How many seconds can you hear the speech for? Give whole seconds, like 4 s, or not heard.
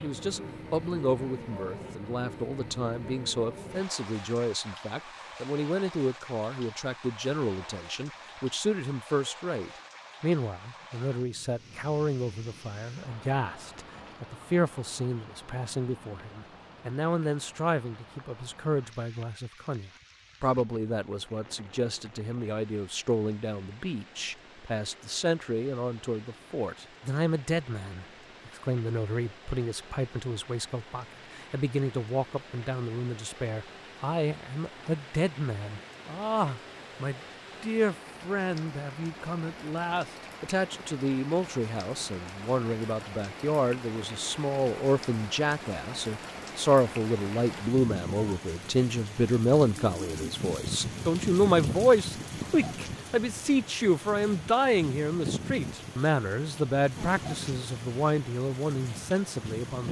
60 s.